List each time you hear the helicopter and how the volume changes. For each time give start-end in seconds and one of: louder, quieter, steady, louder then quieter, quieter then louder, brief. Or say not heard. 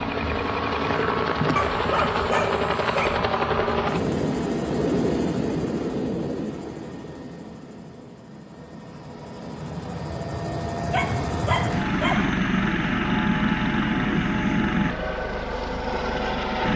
0.0-16.7 quieter then louder.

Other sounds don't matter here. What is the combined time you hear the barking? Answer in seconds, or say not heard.
3 s.